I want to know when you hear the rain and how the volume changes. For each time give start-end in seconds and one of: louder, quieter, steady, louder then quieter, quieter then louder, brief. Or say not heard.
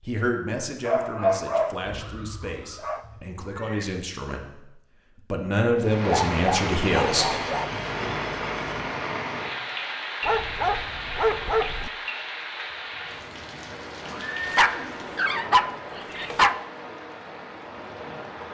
5.8-18.4 quieter.